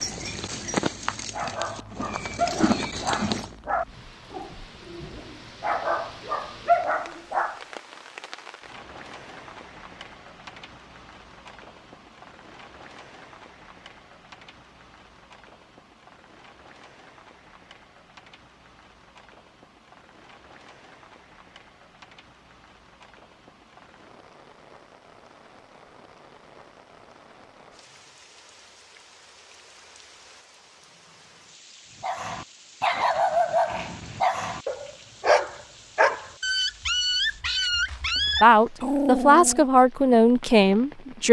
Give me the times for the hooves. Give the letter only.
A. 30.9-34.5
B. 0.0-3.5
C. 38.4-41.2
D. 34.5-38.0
B.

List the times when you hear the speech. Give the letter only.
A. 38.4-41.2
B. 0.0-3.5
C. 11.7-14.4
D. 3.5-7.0
A.